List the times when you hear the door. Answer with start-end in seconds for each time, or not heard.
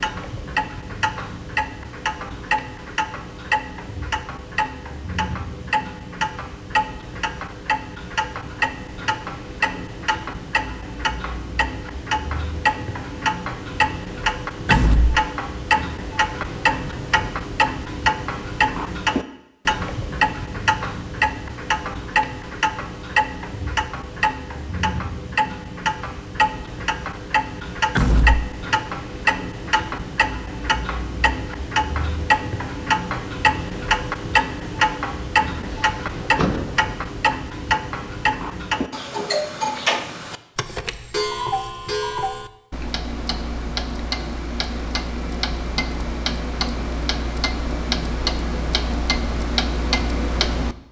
14.7-15.2, 27.9-28.5, 35.5-36.9.